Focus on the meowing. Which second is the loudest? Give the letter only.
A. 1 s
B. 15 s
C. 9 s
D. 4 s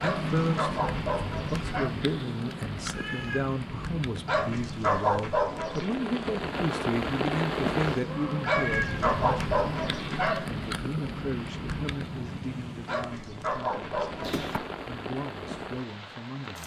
C.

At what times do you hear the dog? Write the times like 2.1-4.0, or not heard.
0.0-1.9, 4.2-6.0, 8.4-10.4, 12.8-14.4.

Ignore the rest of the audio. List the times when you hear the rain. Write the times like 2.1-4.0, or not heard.
0.0-16.6.